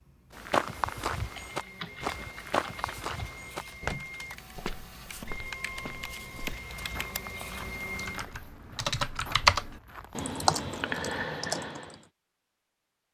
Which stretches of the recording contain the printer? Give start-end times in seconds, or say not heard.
0.0-8.3.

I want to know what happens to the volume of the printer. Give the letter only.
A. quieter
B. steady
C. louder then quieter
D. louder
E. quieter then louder
D.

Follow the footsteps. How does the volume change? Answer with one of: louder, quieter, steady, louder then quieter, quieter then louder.
quieter.